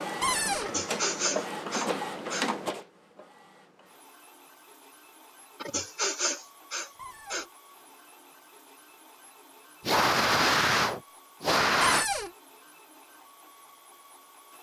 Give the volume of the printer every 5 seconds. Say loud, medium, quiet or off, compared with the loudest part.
loud, quiet, quiet.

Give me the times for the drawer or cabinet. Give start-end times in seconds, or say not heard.
0.2-0.8, 7.0-7.5, 11.8-12.3.